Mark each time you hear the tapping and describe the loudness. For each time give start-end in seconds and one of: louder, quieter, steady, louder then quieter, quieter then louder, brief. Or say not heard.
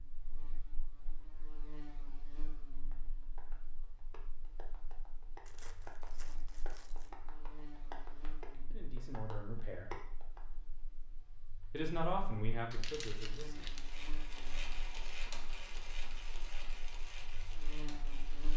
2.9-10.4 louder.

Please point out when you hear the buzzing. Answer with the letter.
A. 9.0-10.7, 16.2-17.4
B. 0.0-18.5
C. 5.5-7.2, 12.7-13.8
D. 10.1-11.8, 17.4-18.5
B.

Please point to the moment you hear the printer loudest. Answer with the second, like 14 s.
15 s.